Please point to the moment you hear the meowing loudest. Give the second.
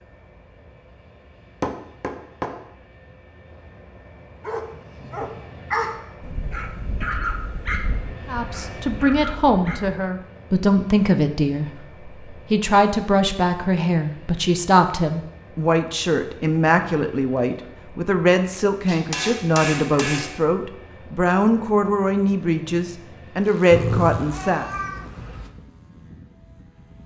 24 s.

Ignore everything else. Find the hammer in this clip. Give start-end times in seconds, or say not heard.
1.6-2.6, 18.9-20.4.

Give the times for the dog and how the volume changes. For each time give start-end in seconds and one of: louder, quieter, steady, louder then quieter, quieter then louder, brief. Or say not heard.
4.5-9.9 quieter.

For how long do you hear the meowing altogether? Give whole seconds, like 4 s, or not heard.
2 s.